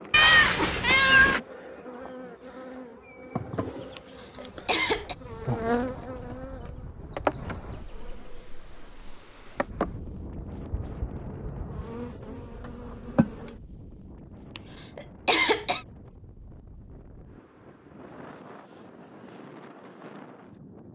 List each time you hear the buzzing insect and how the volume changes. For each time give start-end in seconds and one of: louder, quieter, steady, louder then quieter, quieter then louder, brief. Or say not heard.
0.0-13.6 louder then quieter.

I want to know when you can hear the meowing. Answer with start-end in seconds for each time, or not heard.
0.1-1.4.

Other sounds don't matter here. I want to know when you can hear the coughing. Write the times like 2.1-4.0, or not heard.
4.0-5.2, 14.6-15.8.